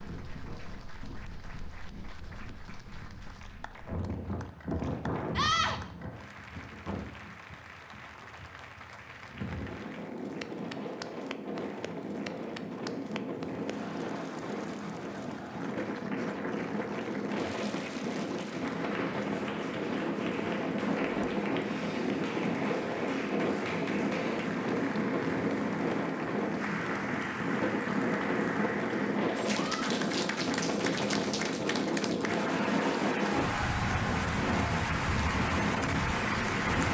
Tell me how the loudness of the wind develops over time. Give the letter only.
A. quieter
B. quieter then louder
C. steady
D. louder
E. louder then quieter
D.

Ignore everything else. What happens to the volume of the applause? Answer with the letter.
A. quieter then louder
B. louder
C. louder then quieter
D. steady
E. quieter
B.